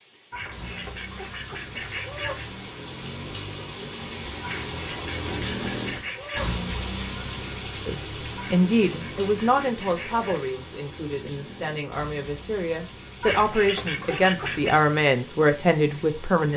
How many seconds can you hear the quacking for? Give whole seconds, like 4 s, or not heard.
8 s.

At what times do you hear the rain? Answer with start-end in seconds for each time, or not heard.
0.0-16.5.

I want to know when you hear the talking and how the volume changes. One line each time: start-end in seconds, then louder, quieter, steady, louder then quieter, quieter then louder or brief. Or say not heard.
7.8-16.5 quieter then louder.